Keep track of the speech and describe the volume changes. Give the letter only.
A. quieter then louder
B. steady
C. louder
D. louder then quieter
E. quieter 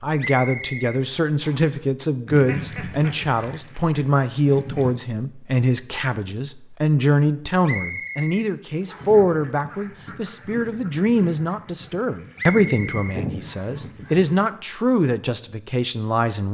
B.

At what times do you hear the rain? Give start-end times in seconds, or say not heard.
not heard.